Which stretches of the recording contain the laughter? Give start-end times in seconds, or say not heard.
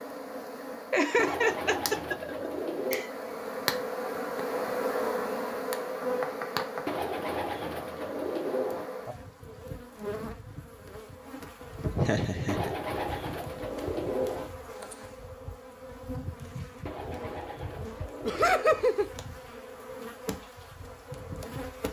0.9-3.1, 11.9-12.8, 18.2-19.1.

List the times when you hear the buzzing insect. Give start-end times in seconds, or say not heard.
0.0-21.8.